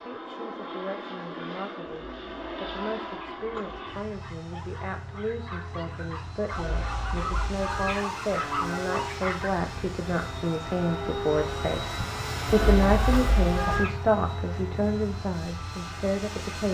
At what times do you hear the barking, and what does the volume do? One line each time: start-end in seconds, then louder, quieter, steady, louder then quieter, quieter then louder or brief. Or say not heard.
4.0-9.5 louder.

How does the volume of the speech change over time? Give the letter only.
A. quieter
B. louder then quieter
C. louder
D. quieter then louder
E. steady
C.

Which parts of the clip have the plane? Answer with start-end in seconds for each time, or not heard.
0.0-16.7.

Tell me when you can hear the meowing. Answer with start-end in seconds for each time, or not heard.
2.0-3.8, 6.5-8.0, 12.4-13.9.